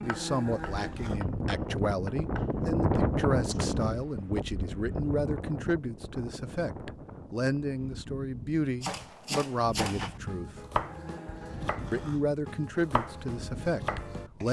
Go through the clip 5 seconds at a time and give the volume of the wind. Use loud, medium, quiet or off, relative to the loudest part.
loud, medium, quiet.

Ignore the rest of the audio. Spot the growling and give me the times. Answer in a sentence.
The growling can be heard from 0.0 to 1.2 s and from 10.8 to 12.3 s.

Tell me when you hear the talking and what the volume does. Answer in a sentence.
You can hear the talking from 0.0 to 10.6 s, at a steady volume; and briefly from 11.9 to 14.4 s.